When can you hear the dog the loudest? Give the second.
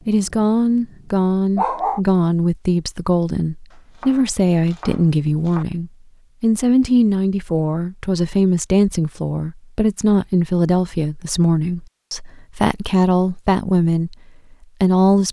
2 s.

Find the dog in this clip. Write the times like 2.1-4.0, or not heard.
0.0-0.9, 1.6-2.0.